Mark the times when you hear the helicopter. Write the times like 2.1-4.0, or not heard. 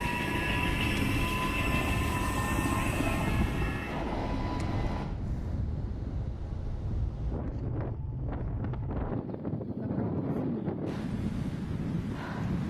0.0-5.0.